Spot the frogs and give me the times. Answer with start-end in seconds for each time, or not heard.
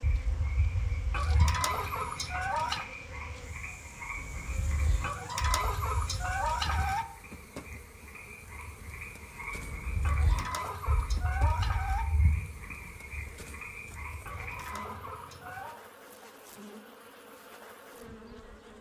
0.0-14.8.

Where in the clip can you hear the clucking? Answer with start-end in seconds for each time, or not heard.
1.1-2.9, 5.0-7.0, 10.0-12.1, 14.2-15.8.